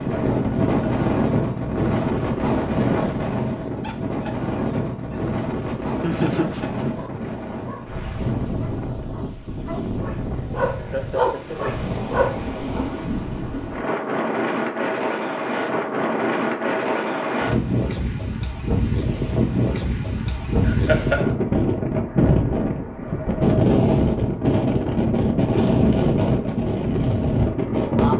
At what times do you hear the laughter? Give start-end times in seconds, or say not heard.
6.0-7.0, 10.8-11.7, 20.6-21.3.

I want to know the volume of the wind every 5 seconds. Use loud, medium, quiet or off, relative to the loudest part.
loud, medium, medium, loud, loud, loud.